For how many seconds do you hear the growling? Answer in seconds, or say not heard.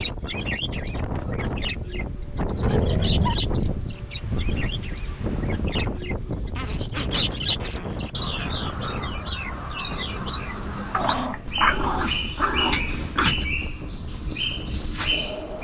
5 s.